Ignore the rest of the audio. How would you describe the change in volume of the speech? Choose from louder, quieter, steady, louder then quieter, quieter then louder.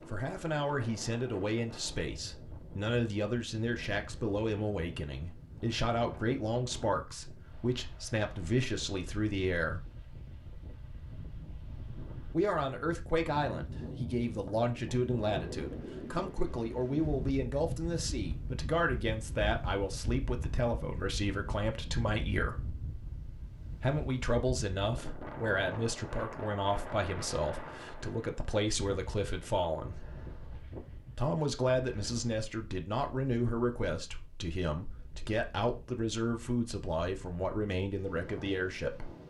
steady.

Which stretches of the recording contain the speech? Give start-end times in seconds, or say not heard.
0.1-9.8, 12.3-22.6, 23.8-30.1, 31.1-39.1.